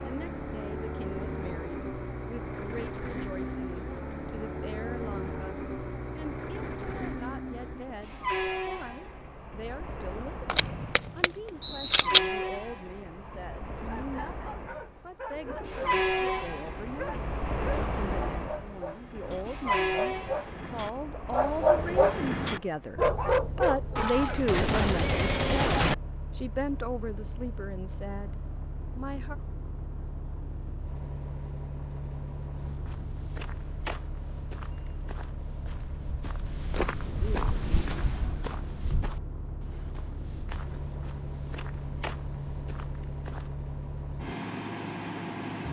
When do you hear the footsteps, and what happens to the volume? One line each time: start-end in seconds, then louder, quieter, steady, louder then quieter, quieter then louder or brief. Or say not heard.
32.5-43.5 louder then quieter.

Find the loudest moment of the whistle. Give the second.
12 s.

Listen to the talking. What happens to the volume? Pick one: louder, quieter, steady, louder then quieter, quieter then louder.
louder.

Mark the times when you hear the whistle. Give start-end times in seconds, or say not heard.
10.6-12.1.